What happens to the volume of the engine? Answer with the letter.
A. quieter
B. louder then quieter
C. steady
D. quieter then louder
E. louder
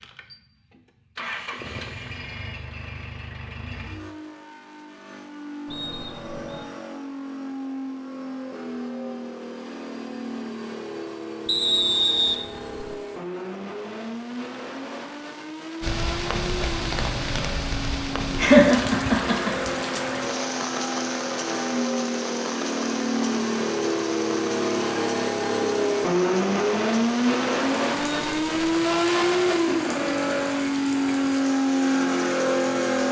E.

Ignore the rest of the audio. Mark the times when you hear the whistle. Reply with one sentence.
You can hear the whistle from 5.7 to 6.7 s, from 11.4 to 12.8 s and from 28.0 to 28.9 s.